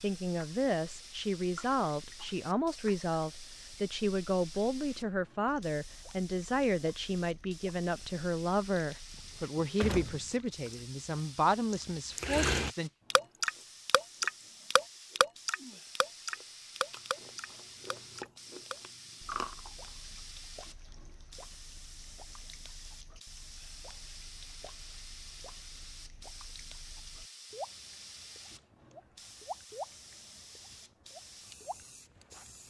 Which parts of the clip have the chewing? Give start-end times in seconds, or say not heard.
13.3-19.9.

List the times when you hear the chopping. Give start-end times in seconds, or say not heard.
not heard.